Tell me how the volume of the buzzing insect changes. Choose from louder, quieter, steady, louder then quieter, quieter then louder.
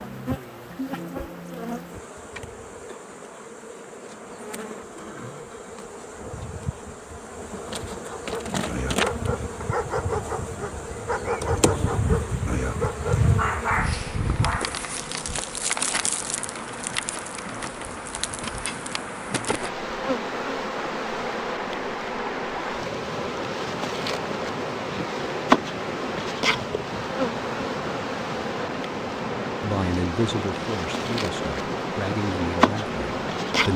louder.